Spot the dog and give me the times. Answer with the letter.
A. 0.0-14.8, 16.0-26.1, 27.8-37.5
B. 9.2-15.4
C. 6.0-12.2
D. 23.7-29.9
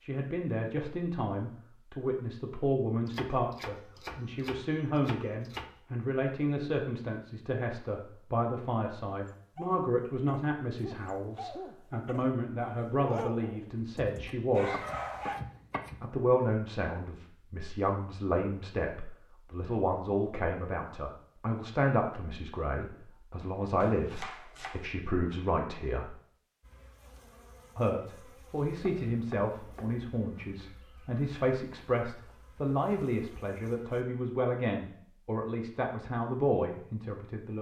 B.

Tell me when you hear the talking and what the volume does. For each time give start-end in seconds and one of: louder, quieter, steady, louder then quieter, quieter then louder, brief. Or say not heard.
0.0-14.8 steady
16.0-26.1 steady
27.8-37.5 steady.